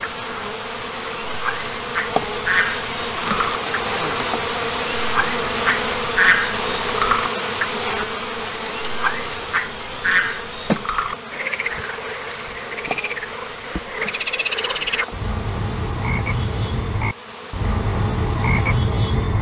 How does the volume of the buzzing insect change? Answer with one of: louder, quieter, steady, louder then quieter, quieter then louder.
quieter.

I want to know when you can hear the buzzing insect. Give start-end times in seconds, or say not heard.
0.0-19.3.